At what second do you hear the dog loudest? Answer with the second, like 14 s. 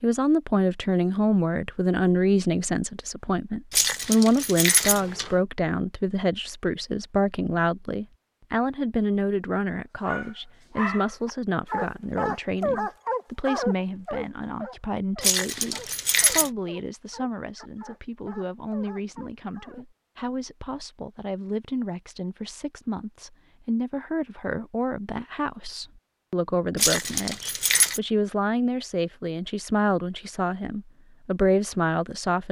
13 s.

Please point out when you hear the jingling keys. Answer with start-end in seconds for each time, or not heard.
3.7-5.3, 15.2-16.5, 26.8-28.0.